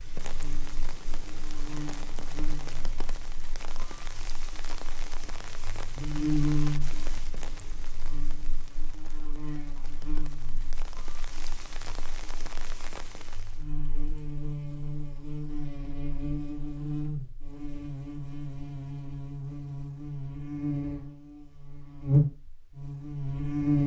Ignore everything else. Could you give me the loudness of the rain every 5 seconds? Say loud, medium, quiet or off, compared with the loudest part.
loud, loud, loud, off, off.